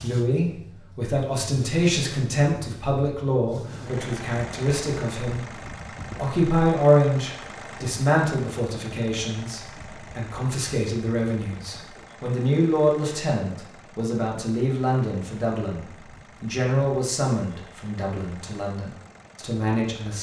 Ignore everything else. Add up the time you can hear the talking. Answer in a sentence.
You can hear the talking for 20 seconds altogether.